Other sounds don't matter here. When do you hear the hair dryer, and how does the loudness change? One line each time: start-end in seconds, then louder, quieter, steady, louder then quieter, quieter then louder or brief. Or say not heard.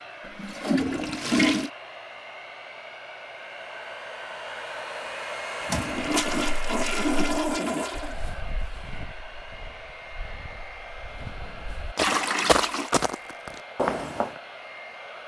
0.0-15.2 louder then quieter.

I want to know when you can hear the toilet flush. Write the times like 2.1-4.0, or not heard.
0.2-1.7, 5.7-8.2, 11.9-12.9.